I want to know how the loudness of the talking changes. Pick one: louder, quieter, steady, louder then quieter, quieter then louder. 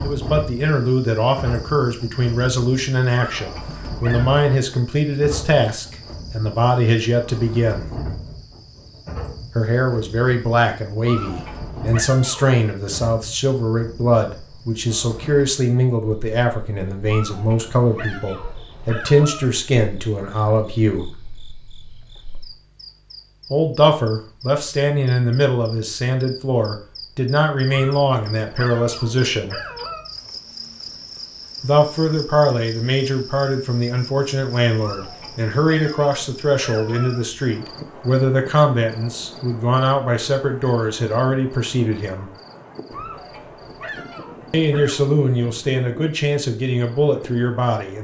steady.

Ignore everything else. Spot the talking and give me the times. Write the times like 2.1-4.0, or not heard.
0.0-7.8, 9.6-21.1, 23.5-29.6, 31.6-42.3, 44.5-47.9.